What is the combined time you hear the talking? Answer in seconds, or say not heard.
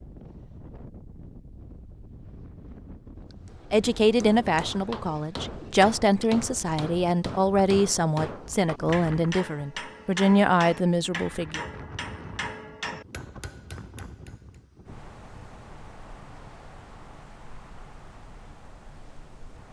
8 s.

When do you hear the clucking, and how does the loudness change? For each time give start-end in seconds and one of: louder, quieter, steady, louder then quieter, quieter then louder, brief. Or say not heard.
not heard.